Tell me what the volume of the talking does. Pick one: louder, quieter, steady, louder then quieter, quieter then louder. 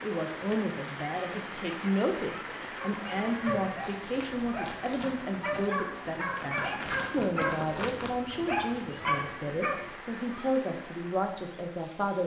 steady.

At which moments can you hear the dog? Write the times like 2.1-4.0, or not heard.
2.9-10.3.